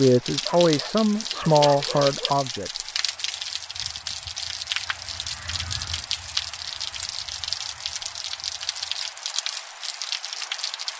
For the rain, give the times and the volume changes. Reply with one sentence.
You can hear the rain from 0.0 to 10.9 s, at a steady volume.